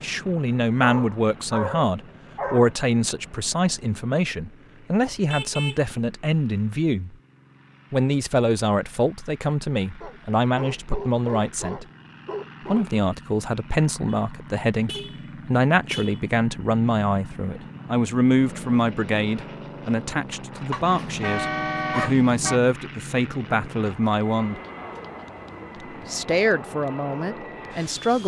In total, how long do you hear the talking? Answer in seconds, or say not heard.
25 s.